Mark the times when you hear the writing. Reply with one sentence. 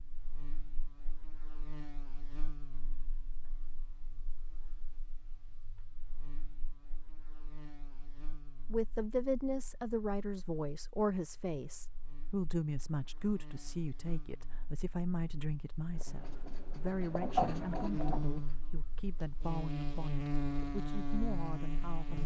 You can hear the writing from 15.9 to 18.6 s.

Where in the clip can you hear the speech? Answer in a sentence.
The speech can be heard from 8.7 to 22.2 s.